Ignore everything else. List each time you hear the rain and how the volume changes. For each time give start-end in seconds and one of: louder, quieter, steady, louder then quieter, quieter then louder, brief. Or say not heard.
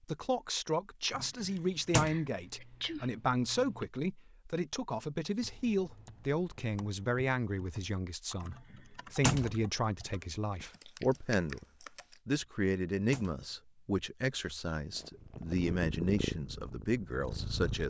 not heard.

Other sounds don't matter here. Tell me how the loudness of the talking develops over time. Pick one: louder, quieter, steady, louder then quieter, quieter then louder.
steady.